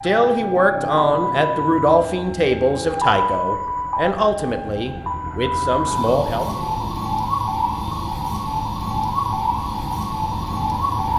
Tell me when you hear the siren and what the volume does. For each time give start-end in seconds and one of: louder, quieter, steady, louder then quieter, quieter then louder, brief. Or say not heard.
0.0-11.1 steady.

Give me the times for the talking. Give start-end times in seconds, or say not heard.
0.0-6.5.